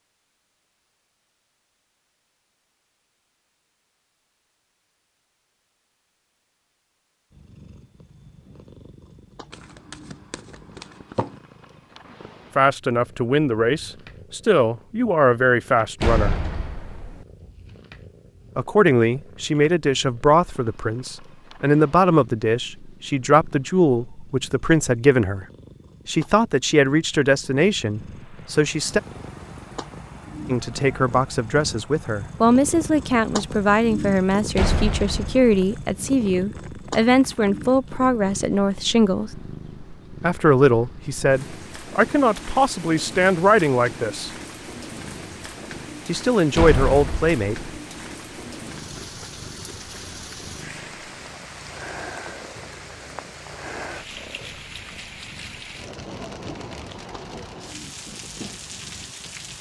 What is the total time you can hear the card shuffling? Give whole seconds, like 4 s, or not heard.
2 s.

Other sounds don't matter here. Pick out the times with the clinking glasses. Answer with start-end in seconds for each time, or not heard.
not heard.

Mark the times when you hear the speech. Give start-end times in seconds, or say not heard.
12.6-16.4, 18.6-25.4, 26.1-29.0, 30.4-39.3, 40.2-44.3, 46.0-47.5.